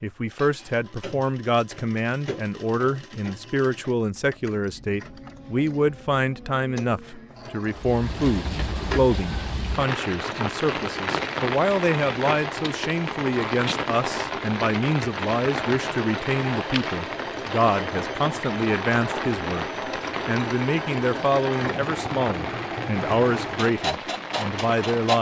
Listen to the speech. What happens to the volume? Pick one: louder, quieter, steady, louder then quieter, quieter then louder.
steady.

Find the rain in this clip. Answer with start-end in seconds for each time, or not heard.
7.7-25.1.